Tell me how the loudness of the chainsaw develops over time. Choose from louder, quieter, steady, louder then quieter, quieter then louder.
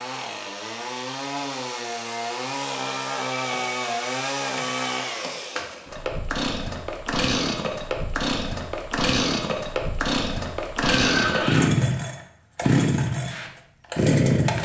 louder.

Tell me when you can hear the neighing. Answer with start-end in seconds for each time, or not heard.
10.8-11.7.